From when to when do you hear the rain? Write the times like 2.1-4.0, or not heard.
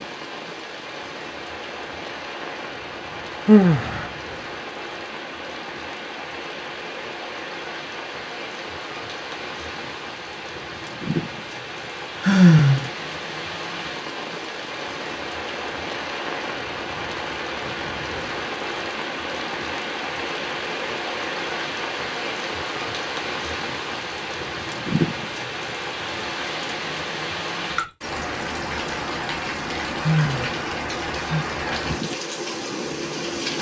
0.0-33.5.